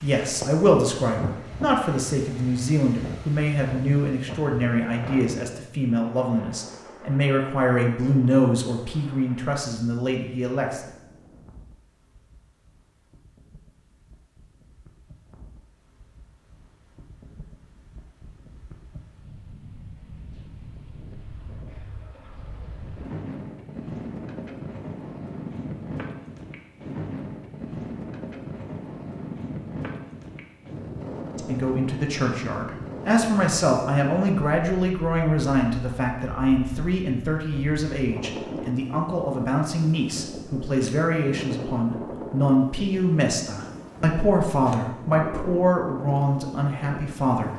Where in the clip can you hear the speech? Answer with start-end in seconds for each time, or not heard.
0.0-10.9, 31.4-47.5.